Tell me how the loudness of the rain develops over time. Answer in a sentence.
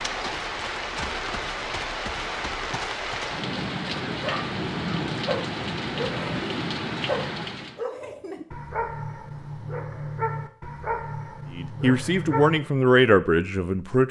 The loudness of the rain stays about the same.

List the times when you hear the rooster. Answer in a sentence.
You can't hear the rooster here.